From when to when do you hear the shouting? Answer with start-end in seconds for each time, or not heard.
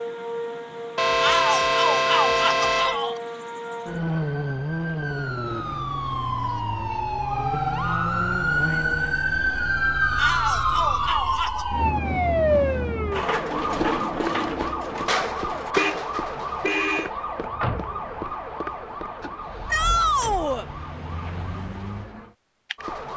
1.2-3.1, 10.2-11.7, 19.7-20.6.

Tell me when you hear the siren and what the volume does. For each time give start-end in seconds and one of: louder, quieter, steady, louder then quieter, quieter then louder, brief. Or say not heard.
0.0-23.1 louder then quieter.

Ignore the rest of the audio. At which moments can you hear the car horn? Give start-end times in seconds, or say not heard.
0.9-3.0, 15.8-17.1.